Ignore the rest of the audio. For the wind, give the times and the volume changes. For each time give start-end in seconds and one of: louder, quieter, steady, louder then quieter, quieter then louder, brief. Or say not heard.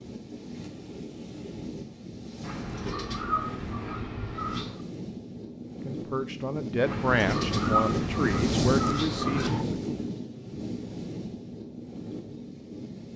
0.0-13.1 louder then quieter.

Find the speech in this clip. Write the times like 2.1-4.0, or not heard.
5.8-10.0.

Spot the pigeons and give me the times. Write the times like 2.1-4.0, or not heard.
2.4-4.8, 6.8-9.7.